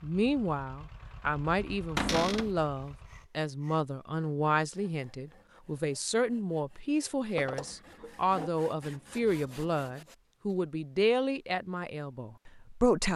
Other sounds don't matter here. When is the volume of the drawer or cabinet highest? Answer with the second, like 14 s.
2 s.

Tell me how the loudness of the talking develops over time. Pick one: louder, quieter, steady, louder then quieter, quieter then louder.
steady.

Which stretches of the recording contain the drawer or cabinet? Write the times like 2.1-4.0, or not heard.
1.9-2.5, 7.3-8.5.